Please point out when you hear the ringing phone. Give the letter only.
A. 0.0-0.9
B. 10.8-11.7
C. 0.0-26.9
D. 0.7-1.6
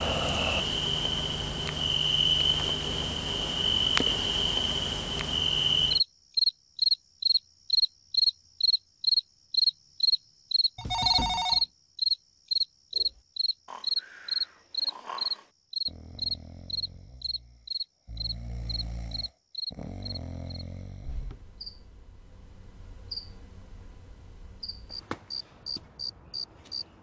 B.